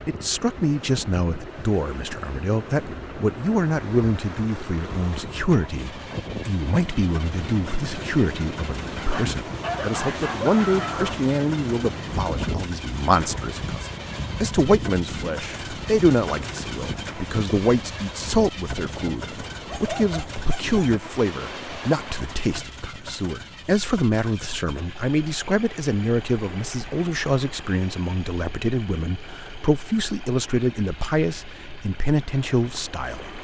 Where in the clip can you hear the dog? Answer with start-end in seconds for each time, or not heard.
8.9-11.2, 19.6-20.8.